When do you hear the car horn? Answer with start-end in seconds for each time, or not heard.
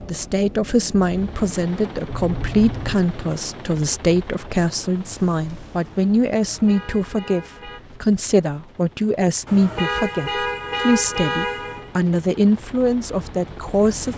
2.0-3.0, 6.3-7.8, 9.4-11.9.